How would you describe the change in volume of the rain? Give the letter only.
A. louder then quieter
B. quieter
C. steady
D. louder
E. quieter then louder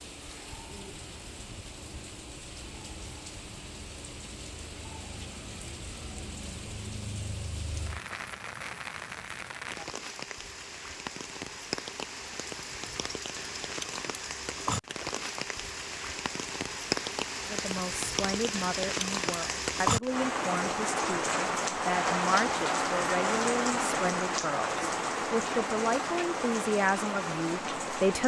D.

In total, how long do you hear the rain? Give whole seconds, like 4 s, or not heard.
28 s.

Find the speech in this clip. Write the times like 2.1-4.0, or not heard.
17.4-28.2.